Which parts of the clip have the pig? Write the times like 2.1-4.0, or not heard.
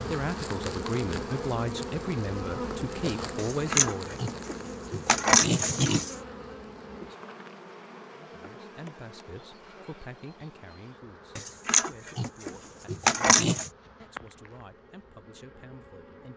3.4-6.2, 11.3-13.7.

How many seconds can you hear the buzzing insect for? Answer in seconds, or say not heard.
16 s.